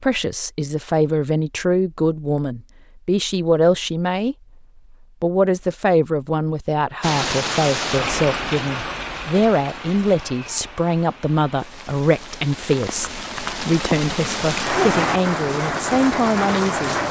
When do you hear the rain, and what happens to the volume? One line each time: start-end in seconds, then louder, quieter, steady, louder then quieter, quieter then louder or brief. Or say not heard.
7.0-17.0 quieter then louder.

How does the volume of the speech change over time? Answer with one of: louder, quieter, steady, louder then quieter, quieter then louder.
steady.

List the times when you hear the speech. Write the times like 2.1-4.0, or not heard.
0.0-4.3, 5.2-16.9.